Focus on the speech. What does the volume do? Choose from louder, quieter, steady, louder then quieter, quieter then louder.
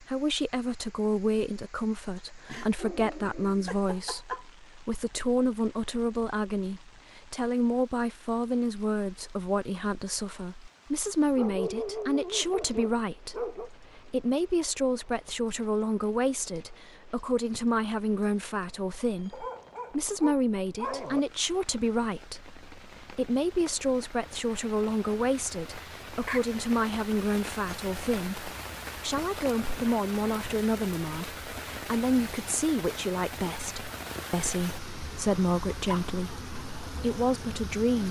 steady.